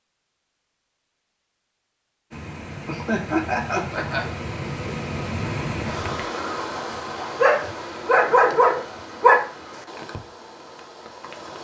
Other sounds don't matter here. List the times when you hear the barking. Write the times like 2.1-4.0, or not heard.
7.3-9.4.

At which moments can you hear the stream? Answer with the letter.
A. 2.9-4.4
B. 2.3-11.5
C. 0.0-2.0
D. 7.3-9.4
B.